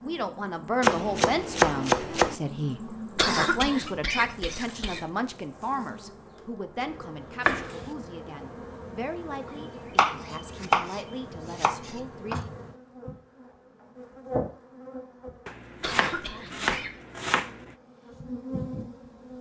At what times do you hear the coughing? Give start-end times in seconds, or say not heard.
3.1-5.0, 15.8-16.9.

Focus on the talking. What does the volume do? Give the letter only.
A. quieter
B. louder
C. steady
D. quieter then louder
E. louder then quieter
A.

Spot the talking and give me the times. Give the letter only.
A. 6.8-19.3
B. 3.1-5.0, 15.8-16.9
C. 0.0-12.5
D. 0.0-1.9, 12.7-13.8
C.